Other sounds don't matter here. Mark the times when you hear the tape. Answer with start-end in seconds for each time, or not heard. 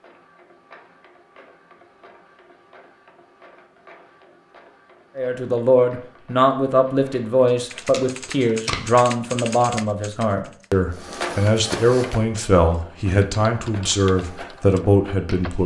7.6-8.9.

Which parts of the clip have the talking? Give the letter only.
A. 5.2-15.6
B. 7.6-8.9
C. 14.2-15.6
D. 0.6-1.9
A.